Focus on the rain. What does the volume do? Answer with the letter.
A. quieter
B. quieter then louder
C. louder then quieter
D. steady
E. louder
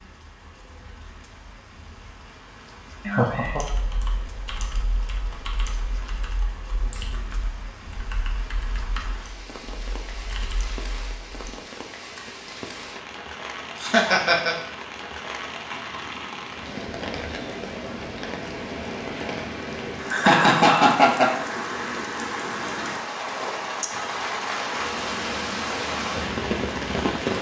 E.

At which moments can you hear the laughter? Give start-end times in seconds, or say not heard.
3.0-3.6, 13.8-14.6, 20.1-21.4.